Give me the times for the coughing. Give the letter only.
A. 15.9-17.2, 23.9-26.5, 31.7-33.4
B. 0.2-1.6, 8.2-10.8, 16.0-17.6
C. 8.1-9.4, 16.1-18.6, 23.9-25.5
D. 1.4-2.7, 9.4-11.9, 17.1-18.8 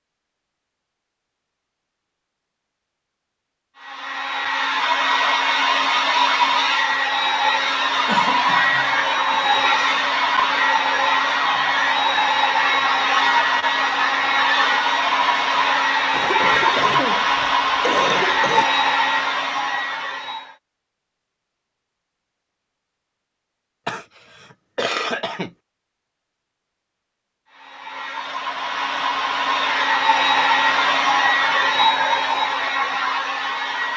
C.